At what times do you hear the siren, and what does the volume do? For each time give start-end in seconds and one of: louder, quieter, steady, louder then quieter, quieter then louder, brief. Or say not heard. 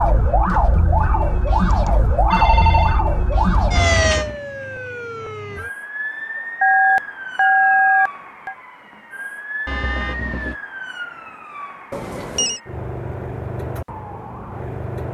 0.0-15.0 quieter.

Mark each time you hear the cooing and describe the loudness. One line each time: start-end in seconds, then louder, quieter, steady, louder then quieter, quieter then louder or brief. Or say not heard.
not heard.